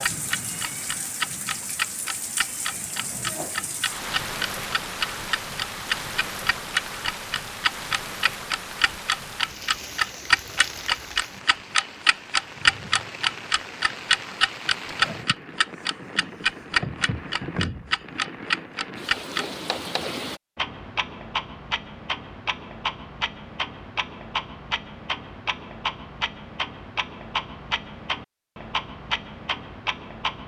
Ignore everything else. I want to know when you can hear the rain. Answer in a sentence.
You can hear the rain from 0.0 to 20.4 s.